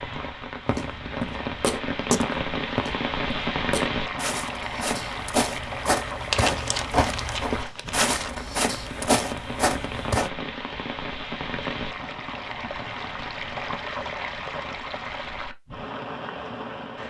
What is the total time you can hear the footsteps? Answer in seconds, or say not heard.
10 s.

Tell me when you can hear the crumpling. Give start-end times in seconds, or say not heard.
6.3-8.3.